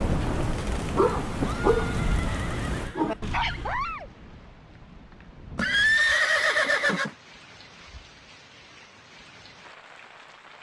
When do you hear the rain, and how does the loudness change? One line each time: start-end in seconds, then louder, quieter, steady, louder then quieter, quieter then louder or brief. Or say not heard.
0.0-10.5 quieter.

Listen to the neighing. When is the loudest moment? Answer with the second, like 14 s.
6 s.